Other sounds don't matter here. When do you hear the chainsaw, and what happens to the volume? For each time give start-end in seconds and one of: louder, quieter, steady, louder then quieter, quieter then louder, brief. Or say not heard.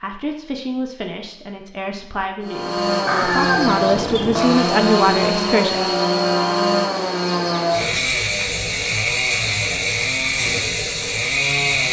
2.4-11.8 steady.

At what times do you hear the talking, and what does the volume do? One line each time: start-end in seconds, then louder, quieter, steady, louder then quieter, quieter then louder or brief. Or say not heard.
0.0-5.8 louder.